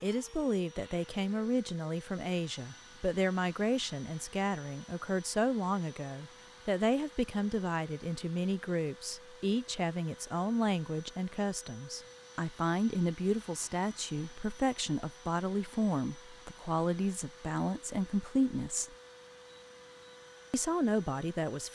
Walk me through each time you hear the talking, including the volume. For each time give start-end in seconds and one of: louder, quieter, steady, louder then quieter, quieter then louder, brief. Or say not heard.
0.0-18.9 steady
20.5-21.7 brief.